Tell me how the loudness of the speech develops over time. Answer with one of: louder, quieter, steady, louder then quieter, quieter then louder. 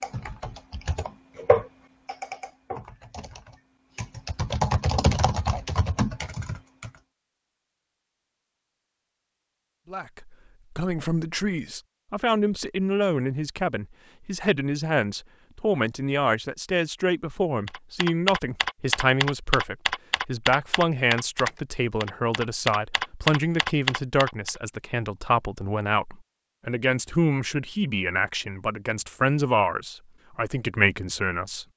steady.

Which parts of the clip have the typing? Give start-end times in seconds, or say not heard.
0.0-6.9, 17.6-24.6.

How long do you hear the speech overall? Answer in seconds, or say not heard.
22 s.